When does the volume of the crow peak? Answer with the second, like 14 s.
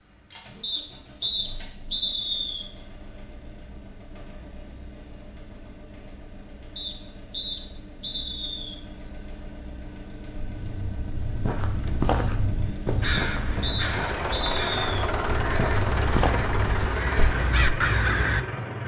18 s.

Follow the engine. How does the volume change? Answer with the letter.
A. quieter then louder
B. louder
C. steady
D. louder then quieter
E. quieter
B.